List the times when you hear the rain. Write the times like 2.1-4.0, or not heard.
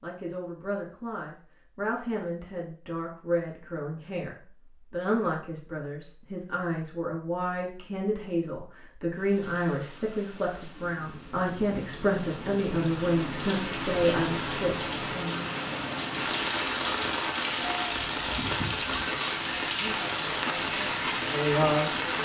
9.1-22.1.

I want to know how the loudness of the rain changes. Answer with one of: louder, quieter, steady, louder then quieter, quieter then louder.
louder.